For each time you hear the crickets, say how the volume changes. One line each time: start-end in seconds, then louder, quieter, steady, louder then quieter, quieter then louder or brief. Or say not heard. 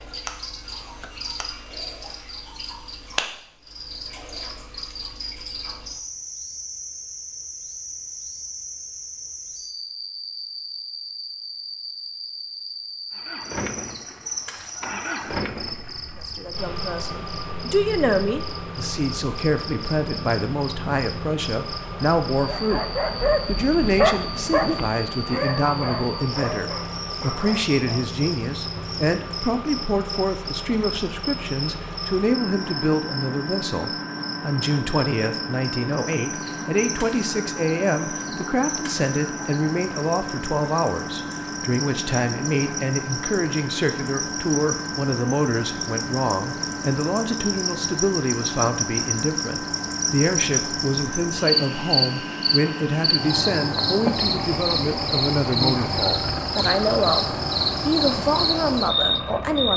0.0-59.7 louder.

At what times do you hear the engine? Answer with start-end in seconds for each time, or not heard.
13.1-59.7.